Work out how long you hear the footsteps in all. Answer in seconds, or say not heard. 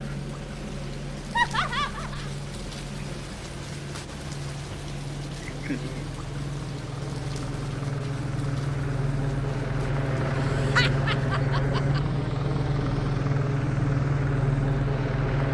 not heard.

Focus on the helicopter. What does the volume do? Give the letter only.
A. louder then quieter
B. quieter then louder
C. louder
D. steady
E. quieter
C.